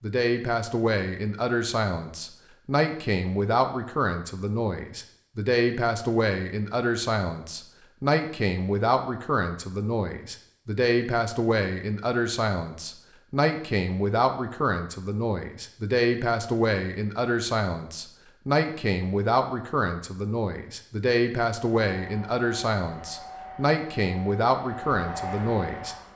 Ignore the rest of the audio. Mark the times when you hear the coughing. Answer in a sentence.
You can't hear the coughing here.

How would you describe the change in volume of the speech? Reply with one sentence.
The loudness of the speech stays about the same.